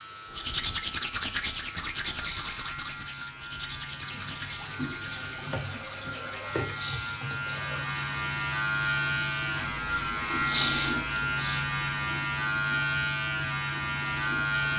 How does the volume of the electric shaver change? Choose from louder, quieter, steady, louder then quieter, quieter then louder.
louder.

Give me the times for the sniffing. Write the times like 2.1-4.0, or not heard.
2.1-3.4, 6.7-7.2, 10.4-11.7.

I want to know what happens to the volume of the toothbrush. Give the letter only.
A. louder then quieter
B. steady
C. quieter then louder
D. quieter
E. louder
D.